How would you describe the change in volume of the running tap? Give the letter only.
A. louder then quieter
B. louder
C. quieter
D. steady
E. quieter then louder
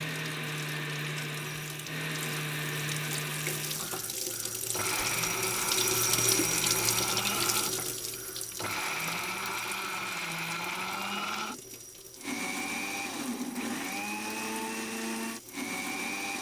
A.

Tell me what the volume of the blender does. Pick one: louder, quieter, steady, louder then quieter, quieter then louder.
steady.